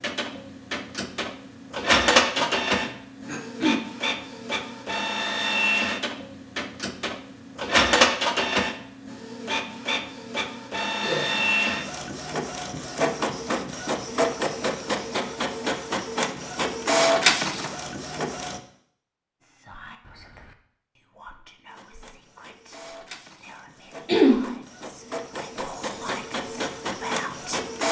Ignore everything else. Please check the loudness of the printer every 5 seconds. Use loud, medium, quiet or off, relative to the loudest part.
loud, loud, loud, loud, quiet, medium.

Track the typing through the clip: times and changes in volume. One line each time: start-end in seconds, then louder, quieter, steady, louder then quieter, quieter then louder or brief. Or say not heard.
not heard.